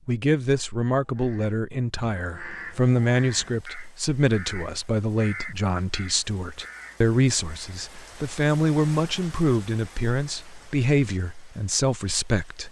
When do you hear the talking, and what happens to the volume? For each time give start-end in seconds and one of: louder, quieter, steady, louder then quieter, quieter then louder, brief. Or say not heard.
0.1-12.6 steady.